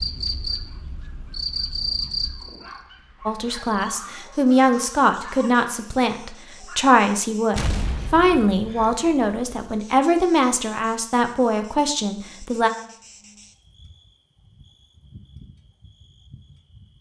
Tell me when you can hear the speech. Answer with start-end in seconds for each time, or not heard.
3.2-12.7.